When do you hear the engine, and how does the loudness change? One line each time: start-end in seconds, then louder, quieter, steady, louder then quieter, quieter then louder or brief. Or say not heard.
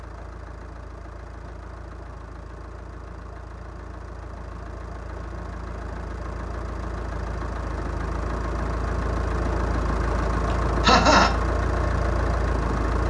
0.0-13.0 louder.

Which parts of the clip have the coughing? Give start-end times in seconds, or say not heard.
10.8-11.3.